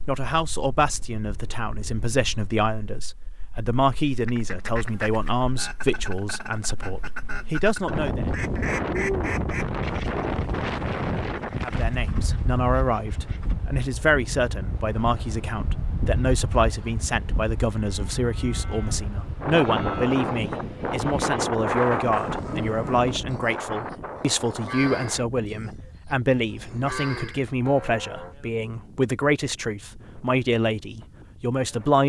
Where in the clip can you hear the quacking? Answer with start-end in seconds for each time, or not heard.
4.2-13.6.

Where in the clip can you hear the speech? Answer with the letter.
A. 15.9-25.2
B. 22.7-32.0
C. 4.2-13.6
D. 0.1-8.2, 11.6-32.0
D.